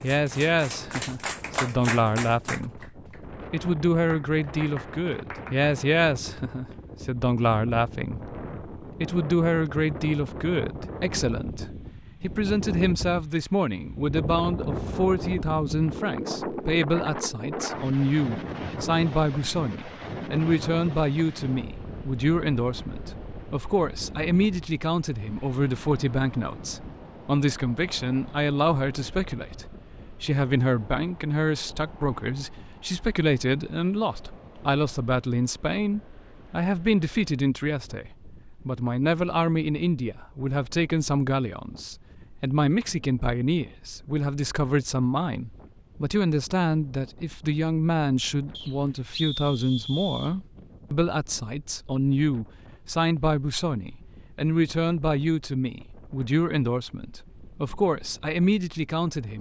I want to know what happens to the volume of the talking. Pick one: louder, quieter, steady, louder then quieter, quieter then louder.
steady.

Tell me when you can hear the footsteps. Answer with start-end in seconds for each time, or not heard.
not heard.